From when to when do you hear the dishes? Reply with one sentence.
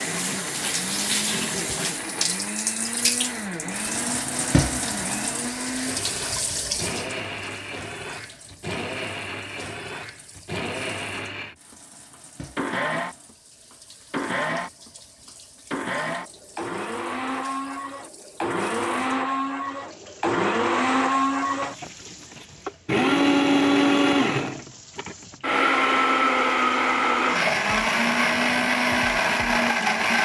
The dishes can't be heard in this clip.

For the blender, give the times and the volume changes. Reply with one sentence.
The blender can be heard from 0.0 to 30.2 s, getting louder.